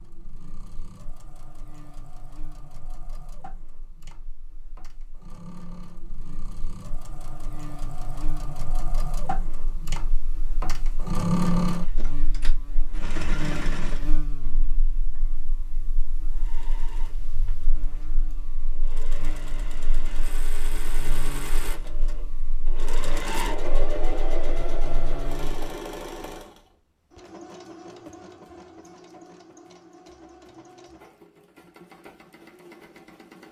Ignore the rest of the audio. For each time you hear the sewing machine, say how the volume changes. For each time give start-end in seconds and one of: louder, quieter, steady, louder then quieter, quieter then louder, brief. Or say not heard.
0.0-14.1 louder
16.3-33.4 louder then quieter.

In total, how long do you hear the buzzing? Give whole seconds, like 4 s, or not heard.
26 s.